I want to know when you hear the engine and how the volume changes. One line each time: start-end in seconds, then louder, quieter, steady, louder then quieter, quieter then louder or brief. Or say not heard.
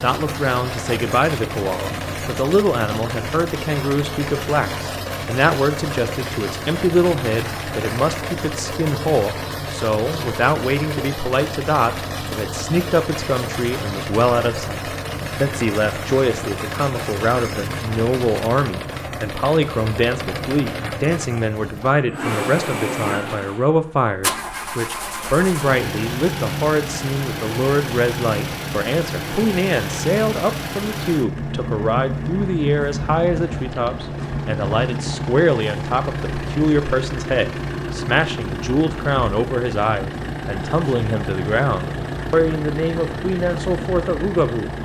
0.0-44.8 steady.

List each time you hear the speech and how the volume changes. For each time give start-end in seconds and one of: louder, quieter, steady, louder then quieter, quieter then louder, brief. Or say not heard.
0.0-44.7 steady.